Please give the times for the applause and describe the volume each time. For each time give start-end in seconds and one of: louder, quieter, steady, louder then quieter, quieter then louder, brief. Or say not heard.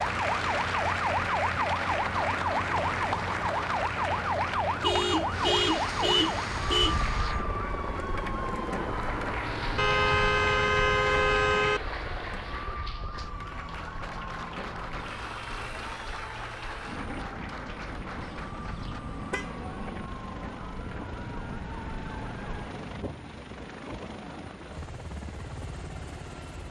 0.0-19.0 quieter.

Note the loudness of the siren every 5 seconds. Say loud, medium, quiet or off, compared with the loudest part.
loud, loud, medium, quiet, quiet, off.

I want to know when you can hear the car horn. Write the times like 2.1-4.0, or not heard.
4.8-7.0, 9.8-11.8, 18.2-19.6.